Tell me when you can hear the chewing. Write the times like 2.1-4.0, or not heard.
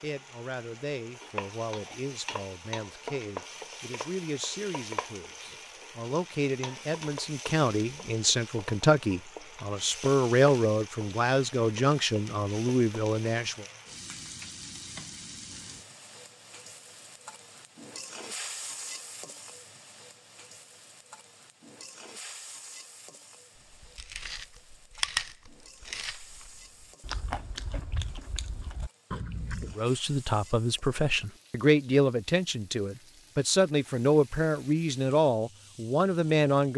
23.6-29.8.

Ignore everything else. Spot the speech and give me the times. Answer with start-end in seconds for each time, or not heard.
0.0-13.7, 29.8-36.7.